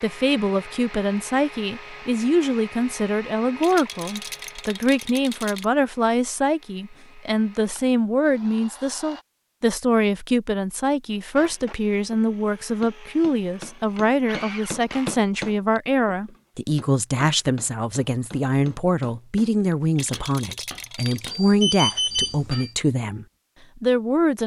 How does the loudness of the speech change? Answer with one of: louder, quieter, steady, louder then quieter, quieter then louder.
steady.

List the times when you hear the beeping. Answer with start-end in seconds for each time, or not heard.
21.1-22.7.